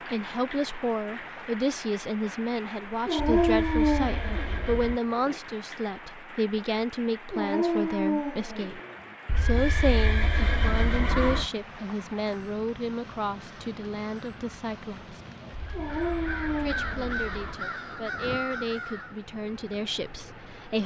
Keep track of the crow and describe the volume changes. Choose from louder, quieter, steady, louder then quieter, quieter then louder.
louder.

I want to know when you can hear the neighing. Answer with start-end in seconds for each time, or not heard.
3.1-5.0, 9.2-11.5, 15.5-17.6.